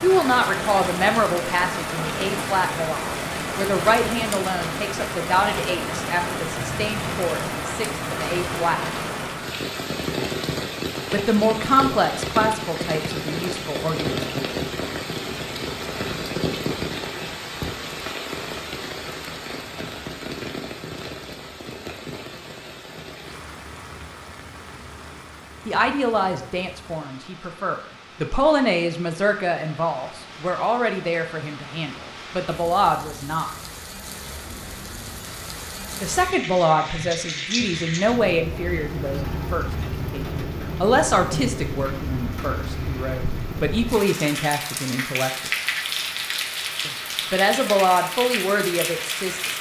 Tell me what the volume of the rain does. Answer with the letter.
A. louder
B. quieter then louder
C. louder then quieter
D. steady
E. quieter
B.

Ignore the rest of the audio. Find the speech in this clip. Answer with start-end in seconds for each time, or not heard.
0.0-8.8, 11.1-14.2, 25.6-33.5, 36.0-45.5, 46.9-49.5.